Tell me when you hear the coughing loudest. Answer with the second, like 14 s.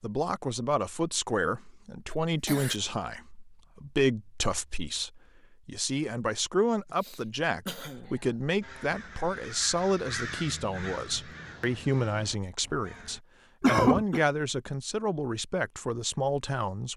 14 s.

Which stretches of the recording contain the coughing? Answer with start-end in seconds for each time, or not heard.
2.1-2.8, 6.9-8.3, 13.6-14.2.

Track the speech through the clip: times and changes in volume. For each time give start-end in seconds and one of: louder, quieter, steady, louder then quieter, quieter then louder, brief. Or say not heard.
0.0-16.9 steady.